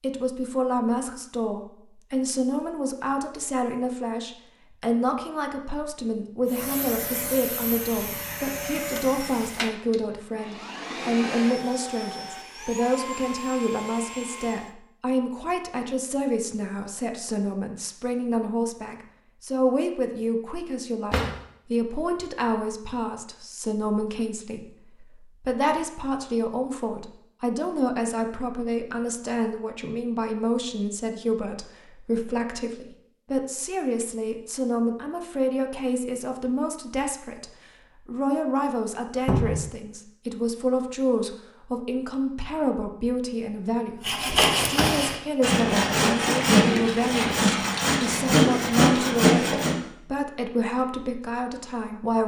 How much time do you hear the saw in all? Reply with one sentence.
You can hear the saw for 6 seconds altogether.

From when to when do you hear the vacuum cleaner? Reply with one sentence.
The vacuum cleaner can be heard from 6.5 to 14.8 s.